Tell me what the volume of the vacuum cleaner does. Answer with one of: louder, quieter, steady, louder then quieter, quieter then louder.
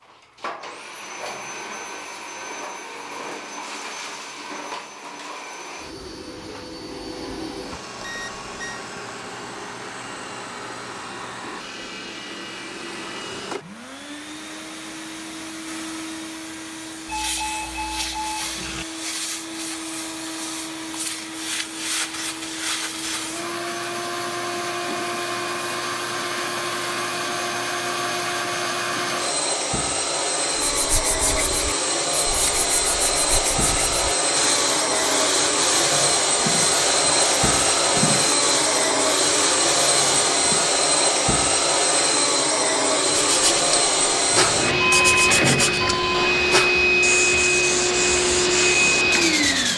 louder.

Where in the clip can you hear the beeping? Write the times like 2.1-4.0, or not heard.
8.0-8.8, 17.1-18.9, 44.2-46.3.